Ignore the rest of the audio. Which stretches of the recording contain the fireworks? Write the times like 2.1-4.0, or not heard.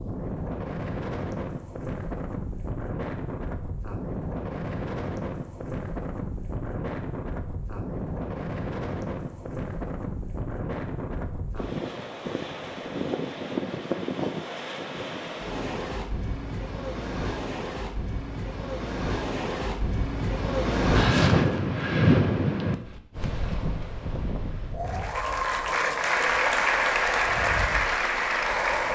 not heard.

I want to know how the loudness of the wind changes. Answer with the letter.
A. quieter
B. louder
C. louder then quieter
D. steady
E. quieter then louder
C.